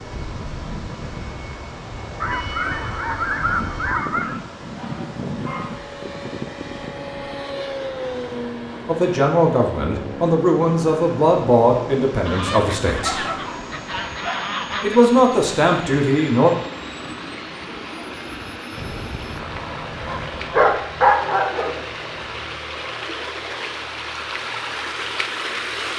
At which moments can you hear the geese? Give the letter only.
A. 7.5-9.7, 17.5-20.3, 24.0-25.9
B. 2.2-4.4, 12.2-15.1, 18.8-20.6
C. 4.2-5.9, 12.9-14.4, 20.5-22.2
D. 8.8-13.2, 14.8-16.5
B.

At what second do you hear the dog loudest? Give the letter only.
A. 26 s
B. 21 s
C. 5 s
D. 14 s
B.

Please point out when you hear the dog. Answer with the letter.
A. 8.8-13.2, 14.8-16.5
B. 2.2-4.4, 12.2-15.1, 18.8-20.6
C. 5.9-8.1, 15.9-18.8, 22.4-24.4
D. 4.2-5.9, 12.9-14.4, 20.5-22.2
D.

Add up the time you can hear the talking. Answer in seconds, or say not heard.
6 s.